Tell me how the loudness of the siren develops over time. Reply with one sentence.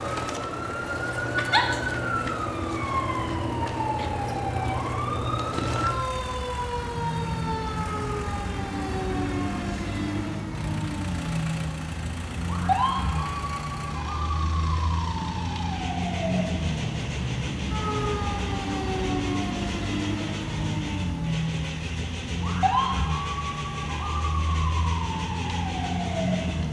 The volume of the siren stays about the same.